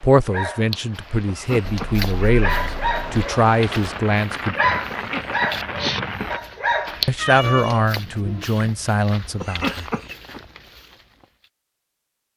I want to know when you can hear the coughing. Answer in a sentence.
The coughing can be heard from 1.2 to 2.0 s, from 4.9 to 6.3 s and from 9.4 to 10.4 s.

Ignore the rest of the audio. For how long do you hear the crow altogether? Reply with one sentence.
You can't hear the crow here.